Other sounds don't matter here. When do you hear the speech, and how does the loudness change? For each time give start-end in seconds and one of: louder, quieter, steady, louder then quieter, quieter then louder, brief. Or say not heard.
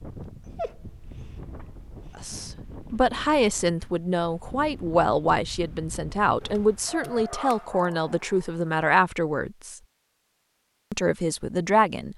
2.1-9.8 steady
10.9-12.1 brief.